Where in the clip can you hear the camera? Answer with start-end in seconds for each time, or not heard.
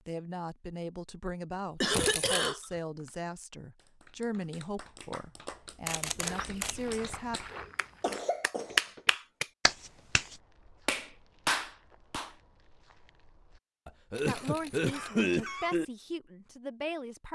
1.9-2.5, 5.8-7.0, 14.1-15.2.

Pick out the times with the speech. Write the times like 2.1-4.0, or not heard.
0.1-7.4, 14.2-17.3.